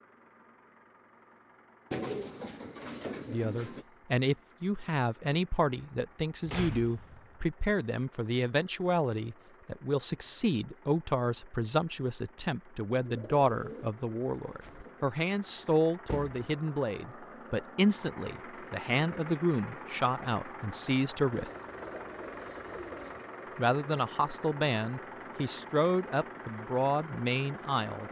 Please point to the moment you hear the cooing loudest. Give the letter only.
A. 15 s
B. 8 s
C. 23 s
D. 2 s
D.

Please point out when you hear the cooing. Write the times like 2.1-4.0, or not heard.
1.9-3.9, 13.0-15.1, 21.3-23.3.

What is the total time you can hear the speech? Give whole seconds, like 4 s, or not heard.
23 s.